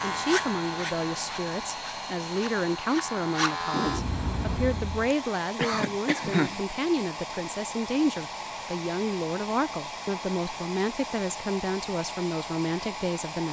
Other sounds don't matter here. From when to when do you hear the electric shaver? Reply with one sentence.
The electric shaver can be heard from 0.0 to 5.2 s.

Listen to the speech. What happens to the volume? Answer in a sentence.
The volume of the speech stays about the same.